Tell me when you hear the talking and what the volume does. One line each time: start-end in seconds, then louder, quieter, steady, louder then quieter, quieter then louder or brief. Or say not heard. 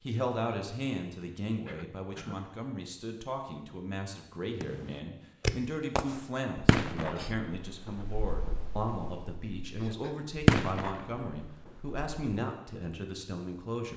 0.0-13.9 steady.